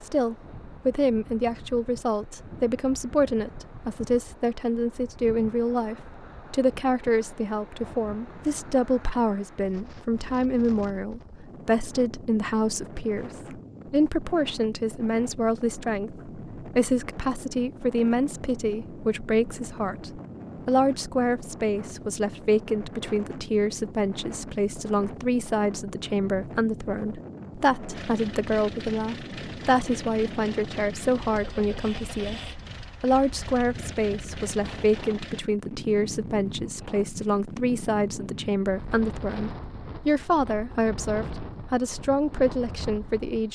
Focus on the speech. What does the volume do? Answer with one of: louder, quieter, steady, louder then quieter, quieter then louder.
steady.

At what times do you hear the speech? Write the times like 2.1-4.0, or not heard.
0.0-43.5.